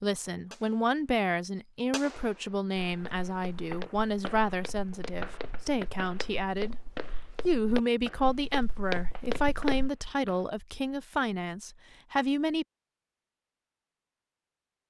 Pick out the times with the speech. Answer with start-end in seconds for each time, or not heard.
0.0-12.7.